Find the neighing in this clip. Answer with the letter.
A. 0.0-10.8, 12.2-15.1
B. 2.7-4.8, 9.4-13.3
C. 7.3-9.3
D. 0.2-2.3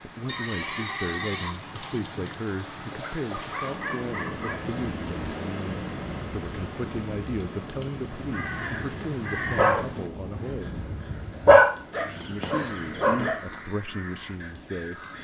D.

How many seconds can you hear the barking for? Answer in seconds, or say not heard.
6 s.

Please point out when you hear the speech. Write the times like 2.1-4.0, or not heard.
0.0-10.8, 12.2-15.1.